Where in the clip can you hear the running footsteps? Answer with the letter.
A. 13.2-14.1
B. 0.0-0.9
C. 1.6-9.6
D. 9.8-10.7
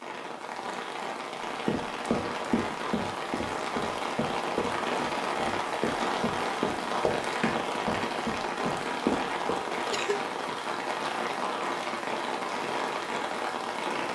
C.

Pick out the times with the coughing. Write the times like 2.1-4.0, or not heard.
9.8-10.7.